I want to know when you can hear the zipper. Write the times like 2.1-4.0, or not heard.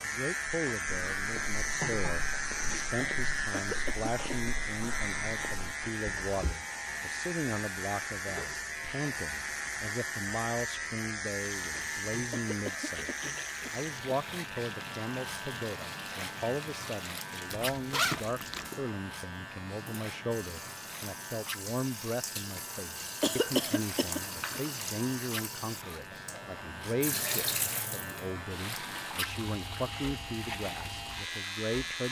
17.5-18.7.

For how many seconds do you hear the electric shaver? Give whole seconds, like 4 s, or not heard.
32 s.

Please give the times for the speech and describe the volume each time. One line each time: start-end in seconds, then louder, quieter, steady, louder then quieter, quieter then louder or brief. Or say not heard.
0.1-13.1 steady
13.7-32.0 steady.